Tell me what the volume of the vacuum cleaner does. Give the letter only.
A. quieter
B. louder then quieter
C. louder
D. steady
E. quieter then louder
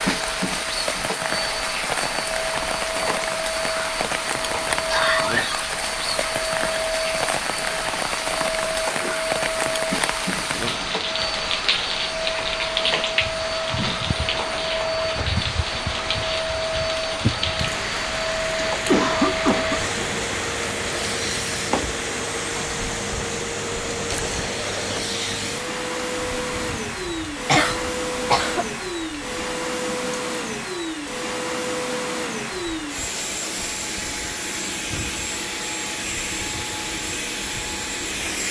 D.